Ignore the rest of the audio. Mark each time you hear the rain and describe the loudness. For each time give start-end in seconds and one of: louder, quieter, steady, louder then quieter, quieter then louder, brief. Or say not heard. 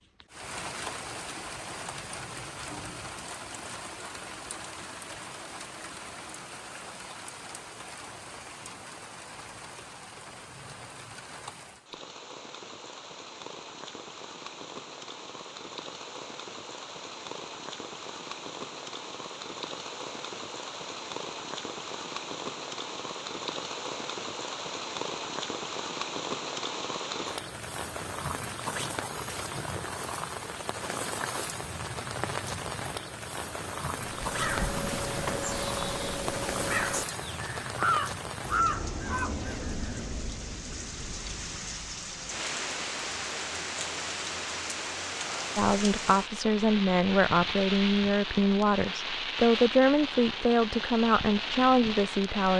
0.0-52.5 louder.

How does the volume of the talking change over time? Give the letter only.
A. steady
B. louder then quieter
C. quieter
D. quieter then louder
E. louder
A.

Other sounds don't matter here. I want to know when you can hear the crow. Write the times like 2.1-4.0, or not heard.
34.0-40.0.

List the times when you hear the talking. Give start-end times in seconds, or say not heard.
45.5-52.5.